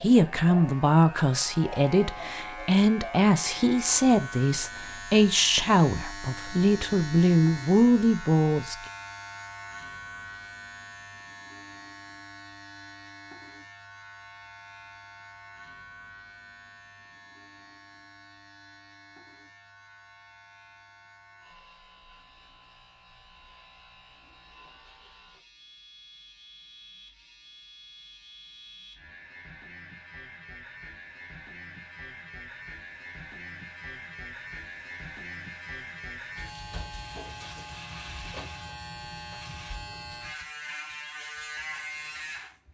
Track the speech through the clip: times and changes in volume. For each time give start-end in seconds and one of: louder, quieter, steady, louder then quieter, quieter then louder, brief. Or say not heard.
0.0-8.8 steady.